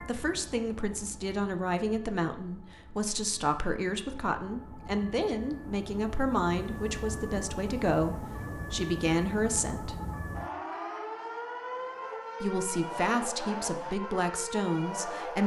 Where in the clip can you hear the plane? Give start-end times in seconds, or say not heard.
not heard.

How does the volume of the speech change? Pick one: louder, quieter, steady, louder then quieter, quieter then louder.
steady.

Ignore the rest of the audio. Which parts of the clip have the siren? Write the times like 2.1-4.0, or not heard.
0.0-15.4.